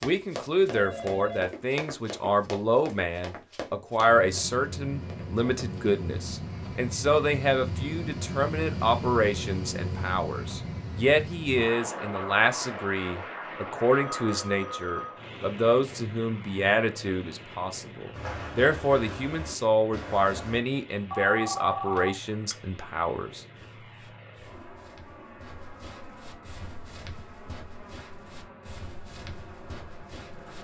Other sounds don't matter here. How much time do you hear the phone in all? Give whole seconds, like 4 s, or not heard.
4 s.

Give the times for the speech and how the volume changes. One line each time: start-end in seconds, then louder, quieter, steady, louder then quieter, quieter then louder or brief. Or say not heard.
0.0-23.4 steady.